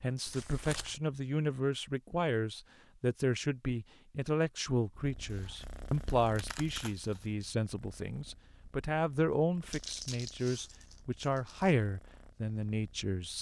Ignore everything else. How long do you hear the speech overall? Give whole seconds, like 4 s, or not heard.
13 s.